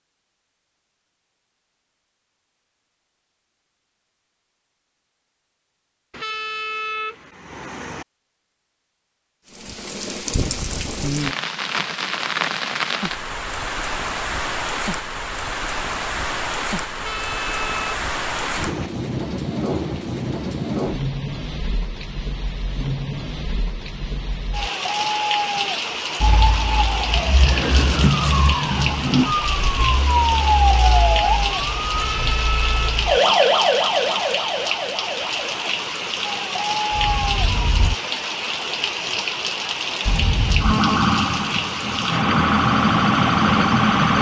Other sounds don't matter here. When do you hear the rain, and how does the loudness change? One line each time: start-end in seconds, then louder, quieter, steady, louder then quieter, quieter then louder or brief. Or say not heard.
9.4-44.1 steady.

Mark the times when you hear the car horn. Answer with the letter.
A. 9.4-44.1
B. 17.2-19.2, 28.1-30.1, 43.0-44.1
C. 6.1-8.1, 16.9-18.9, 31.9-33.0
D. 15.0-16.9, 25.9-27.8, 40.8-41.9
C.